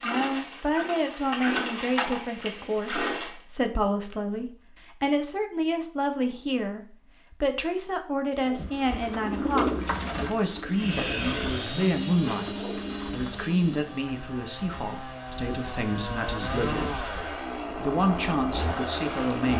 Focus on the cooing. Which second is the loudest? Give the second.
10 s.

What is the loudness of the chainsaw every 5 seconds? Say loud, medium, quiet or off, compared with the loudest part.
loud, off, loud, loud.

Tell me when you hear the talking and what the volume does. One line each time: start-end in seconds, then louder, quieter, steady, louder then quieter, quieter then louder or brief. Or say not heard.
0.0-17.0 steady
17.7-19.5 brief.